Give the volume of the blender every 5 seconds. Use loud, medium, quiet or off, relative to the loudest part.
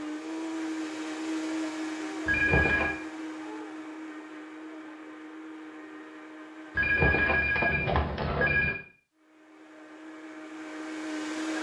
loud, medium, loud.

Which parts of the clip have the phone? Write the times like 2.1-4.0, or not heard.
2.2-3.0, 6.8-8.8.